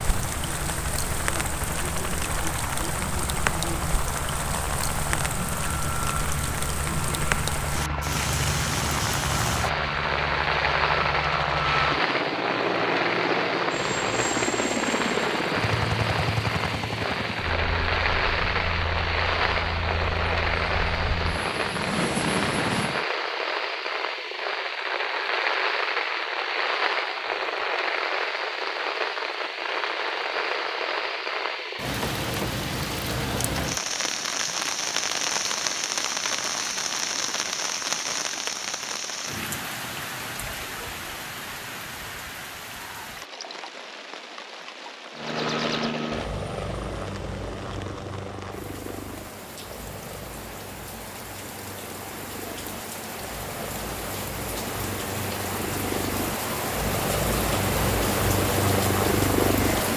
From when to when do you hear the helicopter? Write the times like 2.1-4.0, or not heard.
0.0-23.1, 45.1-59.9.